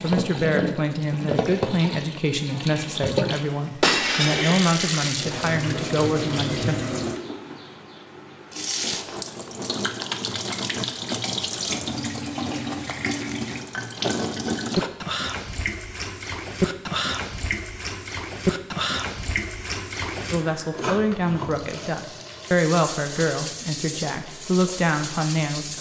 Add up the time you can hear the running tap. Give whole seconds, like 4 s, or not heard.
26 s.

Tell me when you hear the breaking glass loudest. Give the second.
4 s.